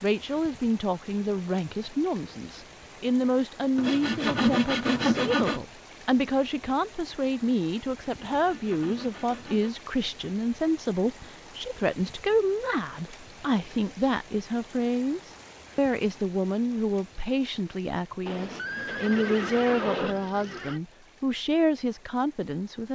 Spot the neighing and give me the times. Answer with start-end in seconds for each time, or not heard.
18.2-20.8.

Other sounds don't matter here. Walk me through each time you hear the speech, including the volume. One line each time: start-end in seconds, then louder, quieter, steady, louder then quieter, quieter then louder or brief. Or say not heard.
0.0-22.9 steady.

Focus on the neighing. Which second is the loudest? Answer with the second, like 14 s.
20 s.